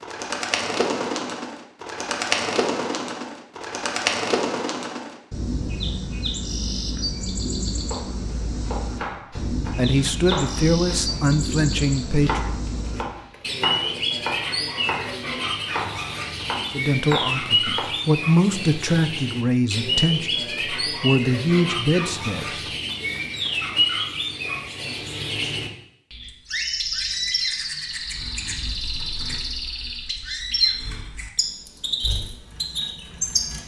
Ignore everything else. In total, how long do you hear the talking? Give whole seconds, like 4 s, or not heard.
9 s.